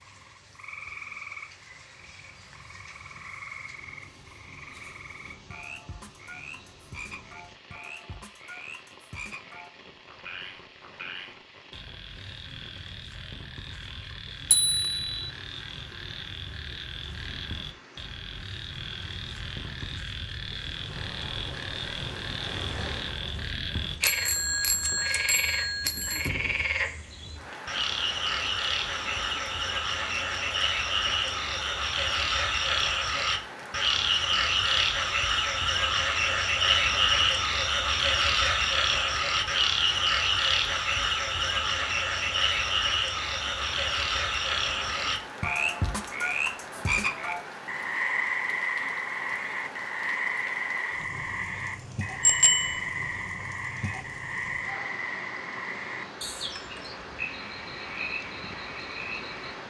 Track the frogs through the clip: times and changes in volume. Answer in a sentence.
The frogs can be heard from 0.0 to 59.5 s, getting louder then quieter.